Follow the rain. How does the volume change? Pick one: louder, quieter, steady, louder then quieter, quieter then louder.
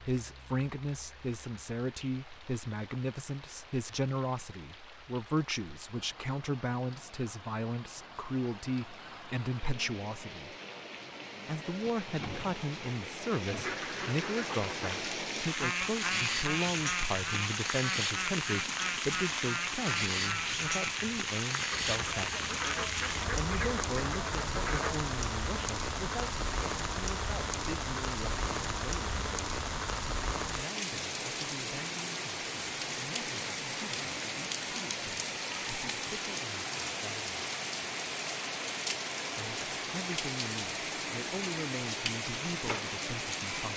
louder.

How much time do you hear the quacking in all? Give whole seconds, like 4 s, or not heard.
11 s.